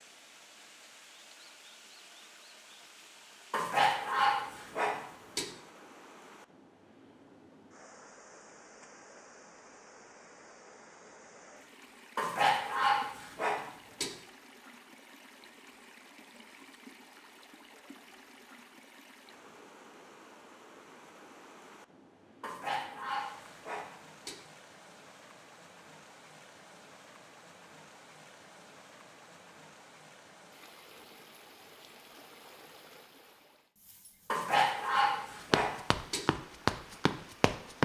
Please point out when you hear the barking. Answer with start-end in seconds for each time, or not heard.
3.5-5.5, 12.2-14.2, 22.4-24.4, 34.2-36.2.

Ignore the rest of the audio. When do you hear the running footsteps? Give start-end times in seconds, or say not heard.
35.5-37.8.